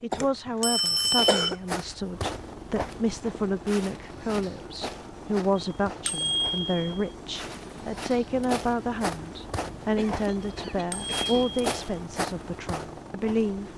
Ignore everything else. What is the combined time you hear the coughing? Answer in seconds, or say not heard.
3 s.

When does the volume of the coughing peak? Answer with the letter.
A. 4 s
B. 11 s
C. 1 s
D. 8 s
C.